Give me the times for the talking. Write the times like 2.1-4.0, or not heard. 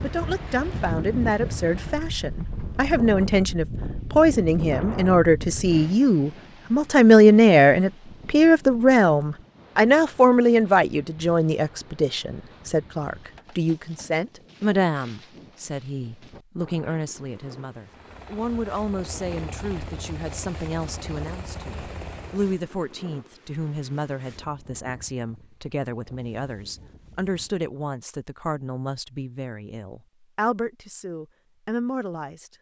0.0-32.5.